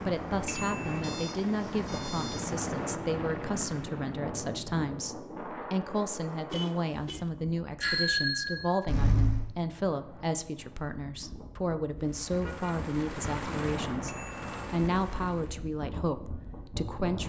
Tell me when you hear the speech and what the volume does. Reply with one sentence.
You can hear the speech from 0.1 to 17.2 s, at a steady volume.